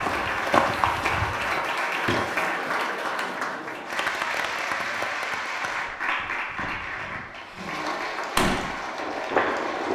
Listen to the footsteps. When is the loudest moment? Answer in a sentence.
The loudest moment of the footsteps is at 1 second.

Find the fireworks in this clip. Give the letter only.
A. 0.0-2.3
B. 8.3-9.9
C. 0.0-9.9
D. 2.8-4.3
B.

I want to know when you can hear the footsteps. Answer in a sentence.
You can hear the footsteps from 0.0 to 2.3 s.